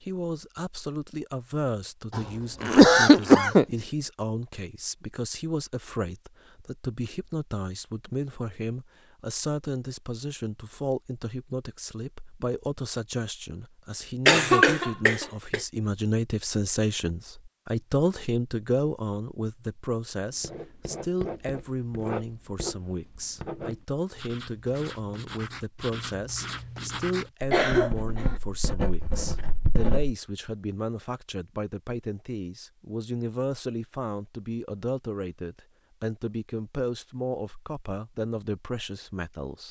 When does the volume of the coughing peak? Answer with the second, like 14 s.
3 s.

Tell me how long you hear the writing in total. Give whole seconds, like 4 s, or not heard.
10 s.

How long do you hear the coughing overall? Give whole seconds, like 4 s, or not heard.
4 s.